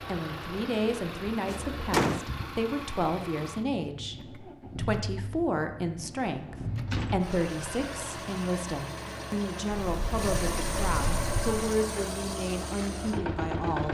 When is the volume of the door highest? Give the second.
2 s.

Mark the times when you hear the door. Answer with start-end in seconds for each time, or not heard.
1.4-2.2, 6.5-7.3, 9.8-11.7.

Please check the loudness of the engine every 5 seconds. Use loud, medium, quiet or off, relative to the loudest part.
medium, medium, loud.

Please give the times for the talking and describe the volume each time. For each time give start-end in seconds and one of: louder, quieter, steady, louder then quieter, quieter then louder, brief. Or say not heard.
0.0-13.9 steady.